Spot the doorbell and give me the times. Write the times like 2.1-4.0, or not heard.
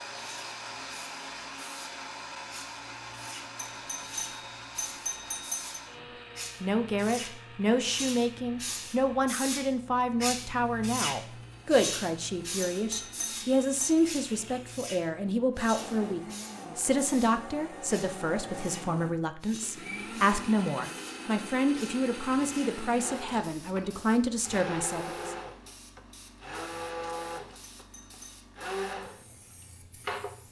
3.5-5.8, 12.6-13.9, 27.8-28.4.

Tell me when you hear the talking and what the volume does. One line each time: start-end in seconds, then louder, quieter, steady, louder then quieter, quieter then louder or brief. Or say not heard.
6.6-25.4 steady.